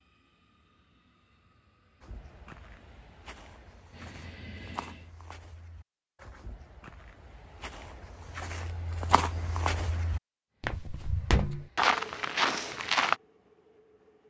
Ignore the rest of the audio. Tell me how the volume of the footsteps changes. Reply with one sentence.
The volume of the footsteps goes up.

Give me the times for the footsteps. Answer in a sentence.
The footsteps can be heard from 2.0 to 13.2 s.